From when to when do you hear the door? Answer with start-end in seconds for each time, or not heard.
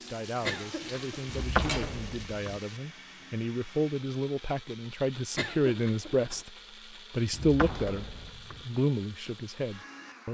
1.2-2.6, 7.3-8.7.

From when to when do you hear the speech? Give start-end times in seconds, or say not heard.
0.1-6.5, 7.1-10.2.